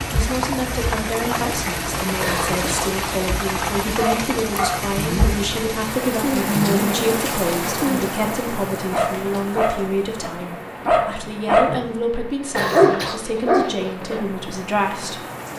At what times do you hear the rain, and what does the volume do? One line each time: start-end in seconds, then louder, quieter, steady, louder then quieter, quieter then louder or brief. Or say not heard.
0.0-15.5 quieter.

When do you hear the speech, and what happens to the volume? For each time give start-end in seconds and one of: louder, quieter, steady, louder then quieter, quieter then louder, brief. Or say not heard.
0.0-15.2 steady.